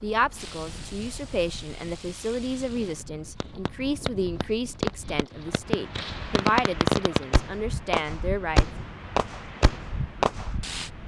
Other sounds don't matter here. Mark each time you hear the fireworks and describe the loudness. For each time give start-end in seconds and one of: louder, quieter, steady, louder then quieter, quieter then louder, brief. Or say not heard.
0.3-10.9 louder.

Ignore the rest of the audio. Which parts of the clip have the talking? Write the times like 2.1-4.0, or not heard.
0.0-8.7.